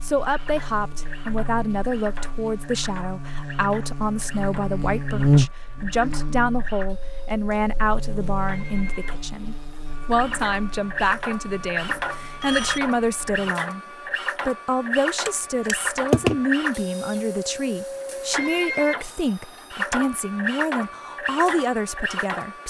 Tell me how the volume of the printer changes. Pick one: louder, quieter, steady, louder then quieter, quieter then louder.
louder.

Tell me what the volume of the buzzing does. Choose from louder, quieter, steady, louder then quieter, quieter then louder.
louder then quieter.